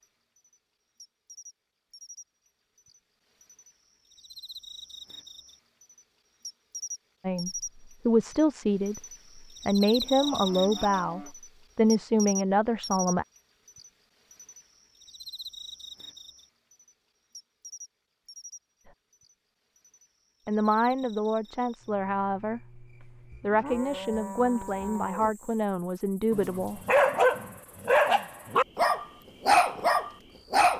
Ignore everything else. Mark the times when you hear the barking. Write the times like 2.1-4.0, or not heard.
26.3-30.7.